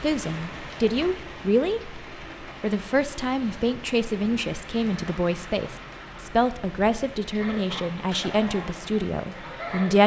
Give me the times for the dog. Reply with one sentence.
The dog can't be heard in this clip.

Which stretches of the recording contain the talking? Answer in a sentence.
The talking can be heard from 0.0 to 10.0 s.